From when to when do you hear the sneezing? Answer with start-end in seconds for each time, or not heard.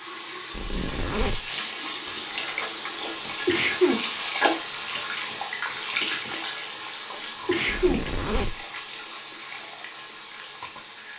3.5-4.0, 7.5-8.0.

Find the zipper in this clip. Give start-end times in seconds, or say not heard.
0.5-1.5, 7.7-8.7.